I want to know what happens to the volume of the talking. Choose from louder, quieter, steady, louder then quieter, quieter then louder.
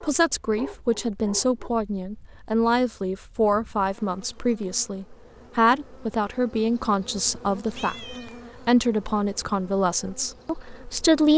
steady.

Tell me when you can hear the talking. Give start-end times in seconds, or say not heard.
0.0-11.3.